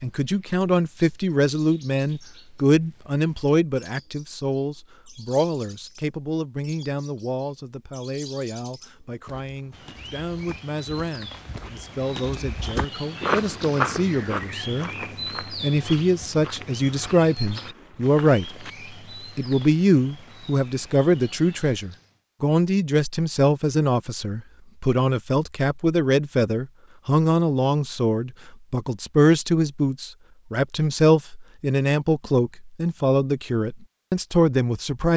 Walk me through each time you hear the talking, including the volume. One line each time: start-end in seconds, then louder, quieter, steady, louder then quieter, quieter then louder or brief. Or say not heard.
0.0-18.6 quieter then louder
19.4-35.1 steady.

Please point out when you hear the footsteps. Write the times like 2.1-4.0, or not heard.
9.2-18.8.